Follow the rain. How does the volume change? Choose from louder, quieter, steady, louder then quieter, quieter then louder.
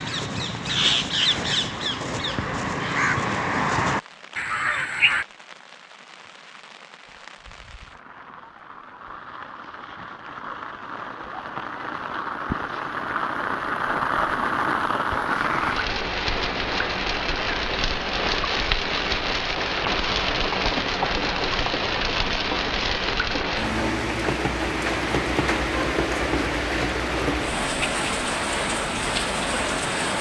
louder.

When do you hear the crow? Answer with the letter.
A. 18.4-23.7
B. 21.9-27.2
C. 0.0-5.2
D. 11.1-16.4
C.